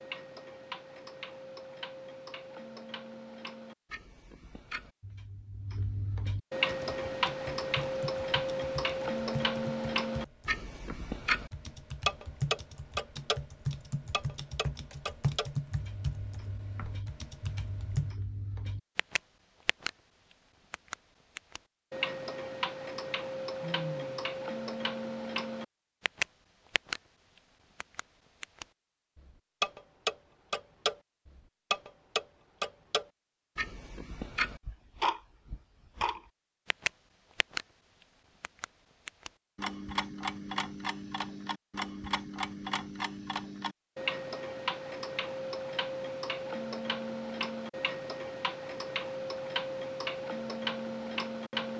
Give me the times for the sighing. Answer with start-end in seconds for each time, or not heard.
23.6-24.2.